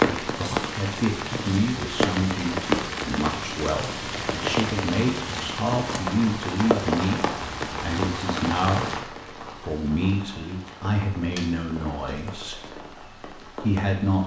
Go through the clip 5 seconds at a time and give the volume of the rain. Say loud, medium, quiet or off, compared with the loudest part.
loud, loud, quiet.